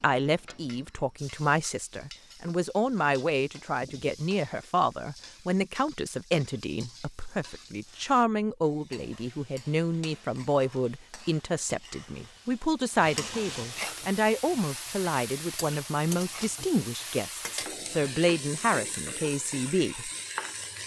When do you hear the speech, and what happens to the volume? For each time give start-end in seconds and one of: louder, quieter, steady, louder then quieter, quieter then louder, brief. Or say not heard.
0.0-20.1 steady.